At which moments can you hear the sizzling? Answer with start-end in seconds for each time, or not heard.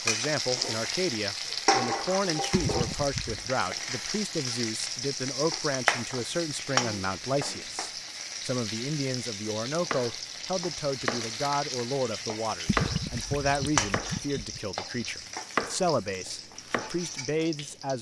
0.0-17.9.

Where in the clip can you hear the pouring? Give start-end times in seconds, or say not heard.
2.5-3.5, 12.7-14.6.